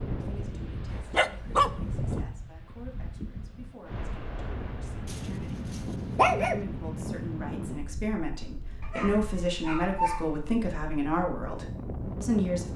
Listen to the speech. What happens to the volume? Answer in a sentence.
The loudness of the speech goes up.